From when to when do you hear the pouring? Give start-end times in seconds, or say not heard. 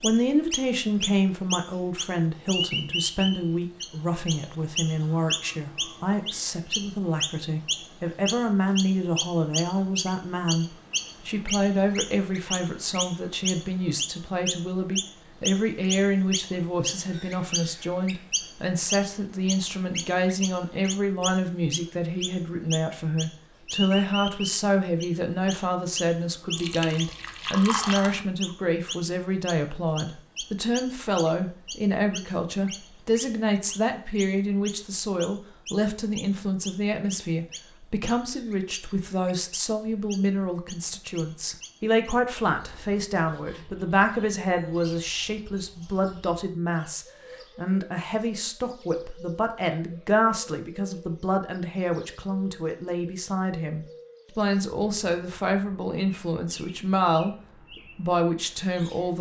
26.6-28.2.